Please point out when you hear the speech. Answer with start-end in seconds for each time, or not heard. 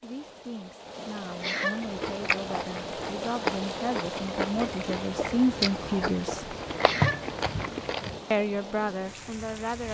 0.0-6.5, 8.3-9.9.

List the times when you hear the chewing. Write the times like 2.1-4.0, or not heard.
1.8-8.2.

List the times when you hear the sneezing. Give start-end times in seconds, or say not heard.
1.4-1.8, 6.8-7.2.